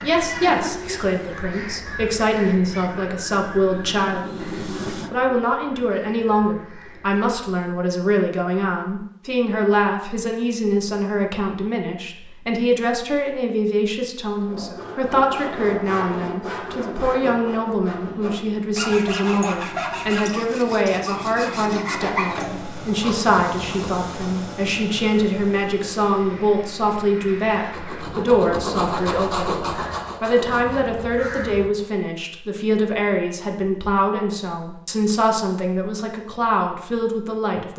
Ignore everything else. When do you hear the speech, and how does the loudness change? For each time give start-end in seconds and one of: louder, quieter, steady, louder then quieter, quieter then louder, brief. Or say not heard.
0.0-37.7 steady.